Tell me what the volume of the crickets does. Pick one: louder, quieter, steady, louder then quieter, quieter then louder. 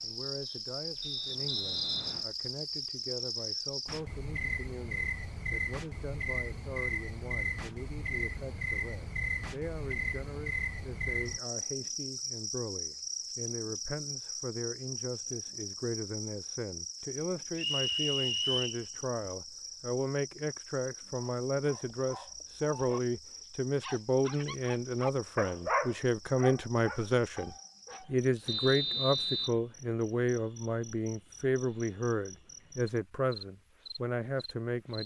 quieter.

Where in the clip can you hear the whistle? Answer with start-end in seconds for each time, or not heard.
1.0-2.2, 17.6-18.8, 28.4-29.6.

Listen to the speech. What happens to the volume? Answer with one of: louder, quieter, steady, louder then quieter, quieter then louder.
louder.